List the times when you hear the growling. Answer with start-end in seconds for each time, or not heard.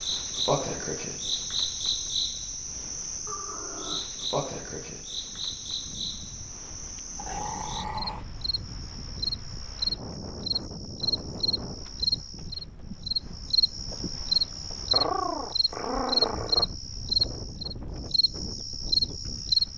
3.2-4.0, 7.2-8.2, 14.9-16.6.